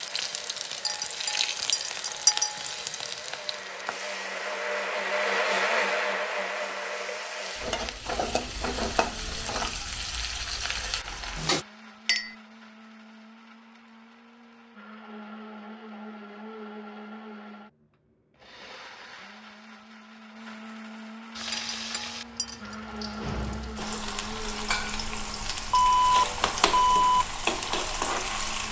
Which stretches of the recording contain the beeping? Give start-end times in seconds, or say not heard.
25.7-27.2.